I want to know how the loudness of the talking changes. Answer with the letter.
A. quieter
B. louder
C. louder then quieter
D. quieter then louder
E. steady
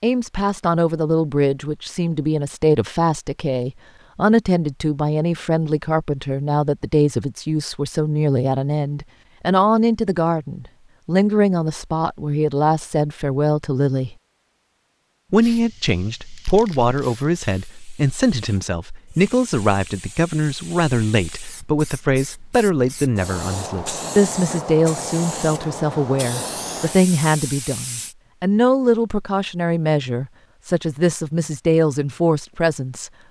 E.